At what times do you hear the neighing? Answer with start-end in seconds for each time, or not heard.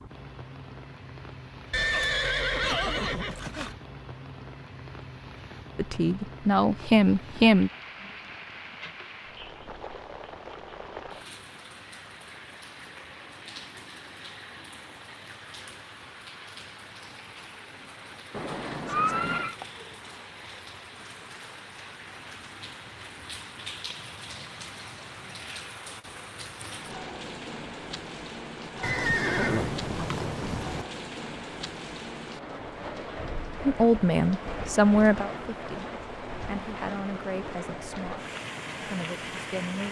1.7-3.8, 18.3-19.6, 28.8-30.9.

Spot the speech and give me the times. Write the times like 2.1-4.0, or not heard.
5.8-7.7, 33.6-35.9, 36.5-39.8.